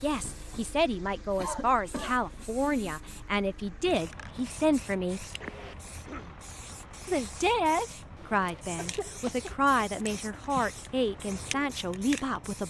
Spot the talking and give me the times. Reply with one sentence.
You can hear the talking from 0.0 to 5.2 s and from 7.0 to 12.6 s.